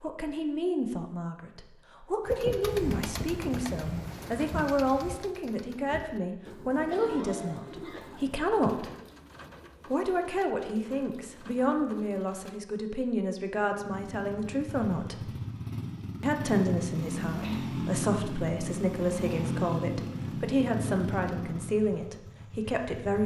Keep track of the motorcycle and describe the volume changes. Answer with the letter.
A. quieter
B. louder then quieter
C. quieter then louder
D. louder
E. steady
B.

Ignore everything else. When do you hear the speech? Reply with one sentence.
The speech can be heard from 0.0 to 8.9 s, from 9.9 to 15.3 s and from 16.2 to 23.2 s.